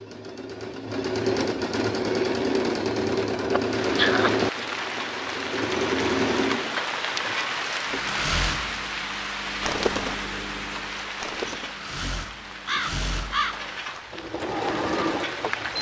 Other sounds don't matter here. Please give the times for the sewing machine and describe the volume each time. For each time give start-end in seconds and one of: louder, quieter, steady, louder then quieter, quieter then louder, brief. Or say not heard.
0.0-15.7 quieter then louder.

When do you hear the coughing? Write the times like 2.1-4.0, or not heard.
3.5-4.3.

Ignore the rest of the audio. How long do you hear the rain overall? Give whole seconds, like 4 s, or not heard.
12 s.